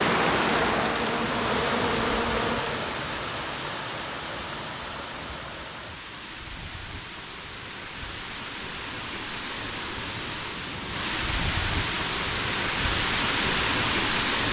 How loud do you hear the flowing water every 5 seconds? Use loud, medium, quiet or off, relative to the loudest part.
loud, medium, loud.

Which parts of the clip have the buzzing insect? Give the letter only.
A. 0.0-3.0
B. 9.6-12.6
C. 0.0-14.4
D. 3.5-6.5
A.